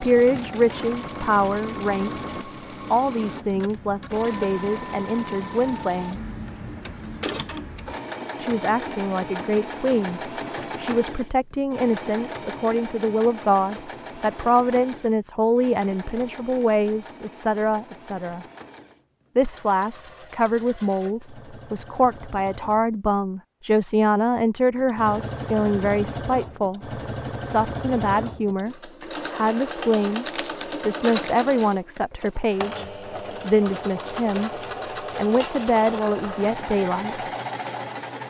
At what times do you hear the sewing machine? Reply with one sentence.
You can hear the sewing machine from 0.0 to 23.0 s and from 24.8 to 38.2 s.